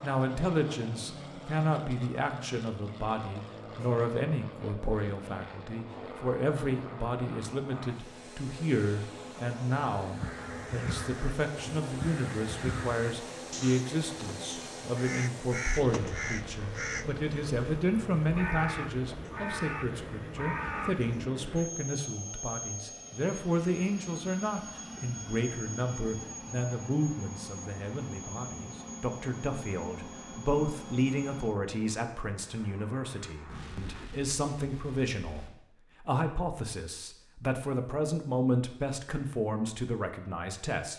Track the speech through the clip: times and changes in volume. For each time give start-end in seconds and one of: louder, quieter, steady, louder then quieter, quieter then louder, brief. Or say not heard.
0.0-40.9 steady.